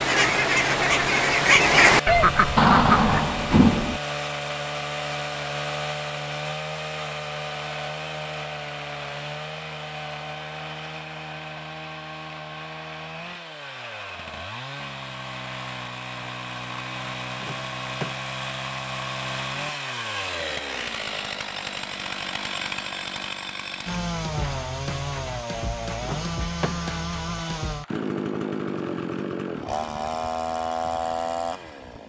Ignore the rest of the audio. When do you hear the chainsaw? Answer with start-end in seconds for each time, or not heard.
0.0-32.0.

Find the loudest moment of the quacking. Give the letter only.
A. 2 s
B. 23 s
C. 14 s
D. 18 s
A.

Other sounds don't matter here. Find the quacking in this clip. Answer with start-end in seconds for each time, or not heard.
0.0-3.1.